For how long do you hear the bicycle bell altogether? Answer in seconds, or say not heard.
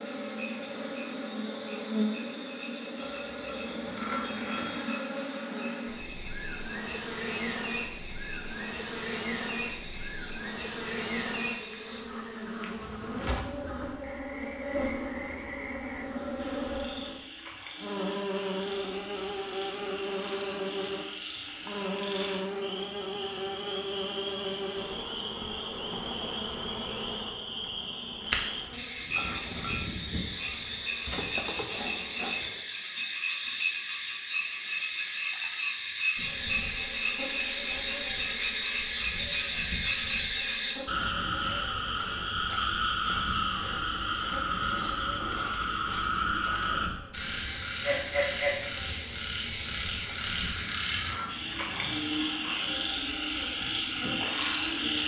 4 s.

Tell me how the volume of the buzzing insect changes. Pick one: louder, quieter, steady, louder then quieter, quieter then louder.
quieter.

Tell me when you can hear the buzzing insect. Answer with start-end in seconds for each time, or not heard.
0.0-55.0.